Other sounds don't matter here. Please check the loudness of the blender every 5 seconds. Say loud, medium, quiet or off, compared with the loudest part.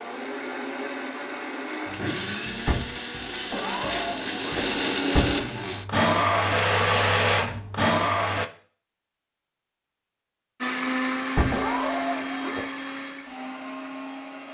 medium, loud, medium.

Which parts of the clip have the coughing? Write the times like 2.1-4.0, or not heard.
3.5-4.8, 11.5-12.7.